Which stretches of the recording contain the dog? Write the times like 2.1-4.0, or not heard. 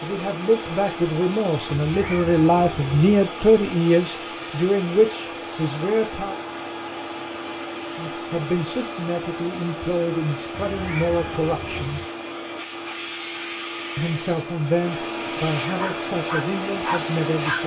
15.8-17.6.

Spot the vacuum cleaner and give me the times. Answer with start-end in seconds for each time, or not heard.
0.0-17.6.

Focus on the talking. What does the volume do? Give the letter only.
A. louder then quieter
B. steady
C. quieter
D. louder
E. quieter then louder
C.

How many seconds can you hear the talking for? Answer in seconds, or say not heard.
14 s.